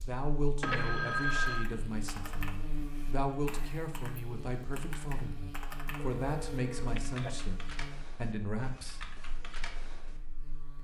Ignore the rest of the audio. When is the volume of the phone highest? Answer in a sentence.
The volume of the phone peaks at 1 second.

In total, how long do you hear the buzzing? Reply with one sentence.
You can hear the buzzing for 11 seconds altogether.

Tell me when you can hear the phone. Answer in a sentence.
The phone can be heard from 0.6 to 1.7 s and from 6.0 to 7.3 s.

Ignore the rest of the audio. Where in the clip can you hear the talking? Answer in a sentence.
You can hear the talking from 0.1 to 9.0 s.